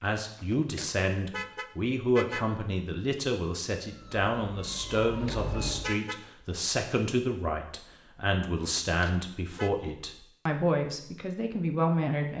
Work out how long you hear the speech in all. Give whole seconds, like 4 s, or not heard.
12 s.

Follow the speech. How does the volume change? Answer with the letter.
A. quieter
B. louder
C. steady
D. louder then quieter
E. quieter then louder
C.